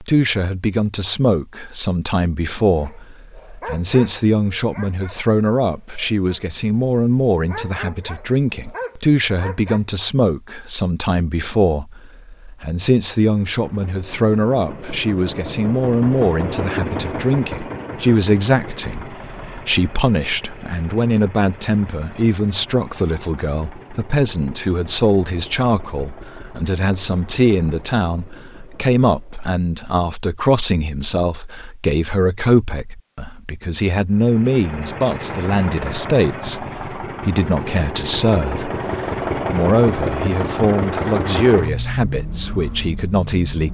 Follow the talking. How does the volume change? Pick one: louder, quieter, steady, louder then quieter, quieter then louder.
steady.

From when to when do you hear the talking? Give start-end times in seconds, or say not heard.
0.0-43.6.